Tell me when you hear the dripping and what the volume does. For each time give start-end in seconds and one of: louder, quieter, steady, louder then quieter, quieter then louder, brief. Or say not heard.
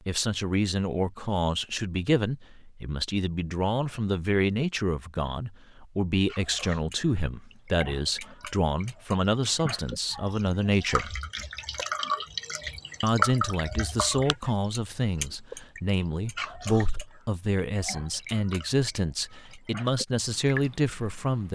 6.2-21.5 louder then quieter.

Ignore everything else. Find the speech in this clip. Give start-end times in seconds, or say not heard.
0.1-11.2, 13.0-21.5.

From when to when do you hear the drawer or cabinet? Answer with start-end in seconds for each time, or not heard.
not heard.